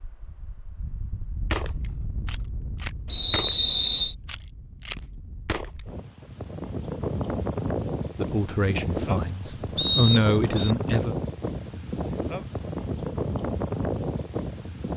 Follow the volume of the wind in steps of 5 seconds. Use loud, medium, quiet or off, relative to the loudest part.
quiet, loud, loud.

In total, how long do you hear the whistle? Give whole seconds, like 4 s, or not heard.
2 s.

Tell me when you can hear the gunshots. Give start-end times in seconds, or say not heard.
1.5-5.8.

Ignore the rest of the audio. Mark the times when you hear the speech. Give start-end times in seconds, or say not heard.
8.2-11.2.